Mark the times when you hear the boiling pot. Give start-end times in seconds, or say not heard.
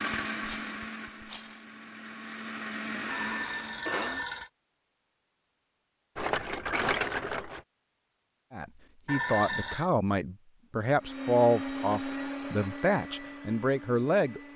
not heard.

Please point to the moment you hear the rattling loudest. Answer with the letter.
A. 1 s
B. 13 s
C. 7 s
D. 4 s
C.